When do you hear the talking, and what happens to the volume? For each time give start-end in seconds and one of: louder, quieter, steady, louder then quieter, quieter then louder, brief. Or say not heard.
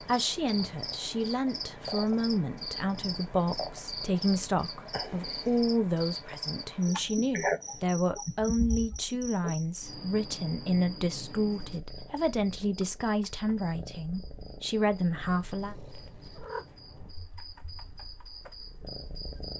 0.1-15.8 steady.